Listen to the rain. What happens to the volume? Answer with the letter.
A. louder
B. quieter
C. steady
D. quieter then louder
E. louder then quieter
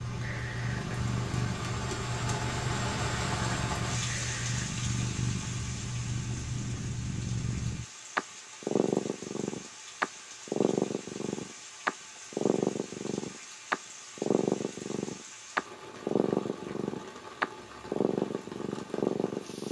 B.